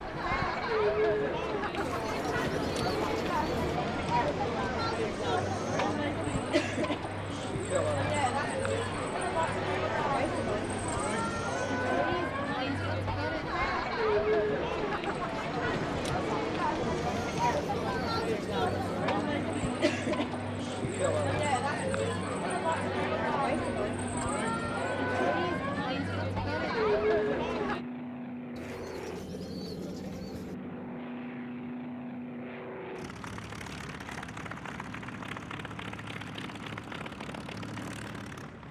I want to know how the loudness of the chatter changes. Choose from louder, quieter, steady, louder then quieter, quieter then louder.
steady.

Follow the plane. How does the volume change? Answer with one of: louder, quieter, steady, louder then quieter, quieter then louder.
steady.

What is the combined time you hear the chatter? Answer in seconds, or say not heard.
28 s.